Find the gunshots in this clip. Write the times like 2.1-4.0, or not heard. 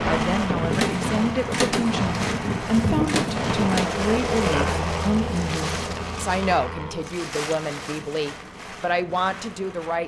0.5-3.9.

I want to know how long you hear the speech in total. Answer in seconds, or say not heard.
10 s.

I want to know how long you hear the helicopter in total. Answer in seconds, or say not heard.
7 s.